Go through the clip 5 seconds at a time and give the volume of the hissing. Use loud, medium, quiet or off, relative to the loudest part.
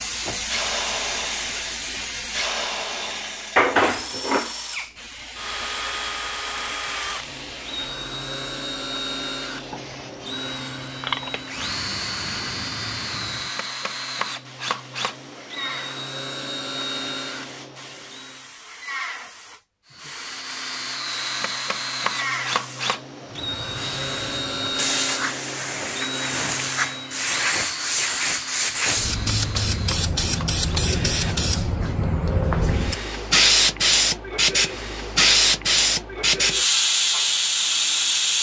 medium, quiet, quiet, quiet, quiet, medium, loud, loud.